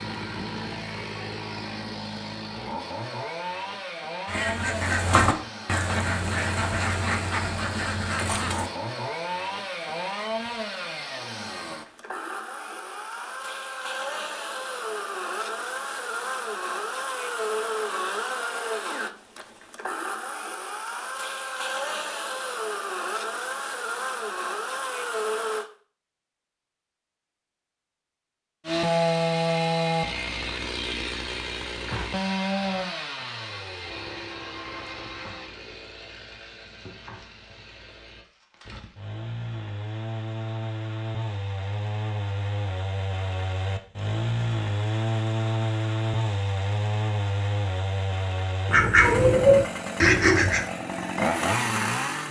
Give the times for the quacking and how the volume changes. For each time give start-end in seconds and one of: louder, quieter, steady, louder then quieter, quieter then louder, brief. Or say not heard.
4.2-8.7 quieter
48.6-50.6 brief.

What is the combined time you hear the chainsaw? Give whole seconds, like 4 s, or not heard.
49 s.